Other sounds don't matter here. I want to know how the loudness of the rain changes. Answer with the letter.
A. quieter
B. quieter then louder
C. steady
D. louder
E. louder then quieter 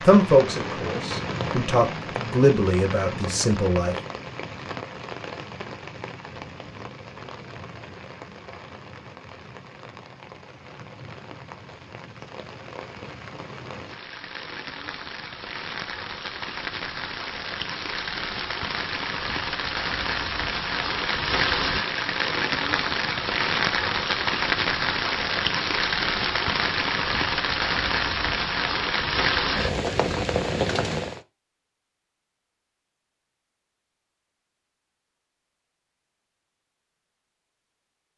B.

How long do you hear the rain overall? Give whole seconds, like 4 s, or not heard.
31 s.